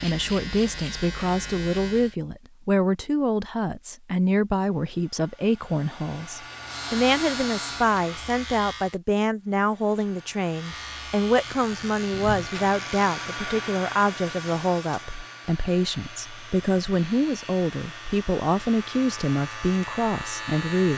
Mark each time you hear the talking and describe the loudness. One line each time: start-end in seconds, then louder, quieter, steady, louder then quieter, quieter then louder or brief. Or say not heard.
0.0-20.9 steady.